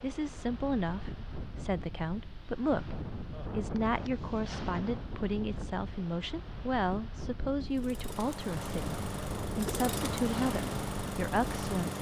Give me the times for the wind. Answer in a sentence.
You can hear the wind from 0.0 to 11.9 s.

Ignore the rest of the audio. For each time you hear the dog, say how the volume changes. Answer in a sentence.
You can't hear the dog here.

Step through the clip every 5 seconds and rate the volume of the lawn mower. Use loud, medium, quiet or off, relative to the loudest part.
off, loud, loud.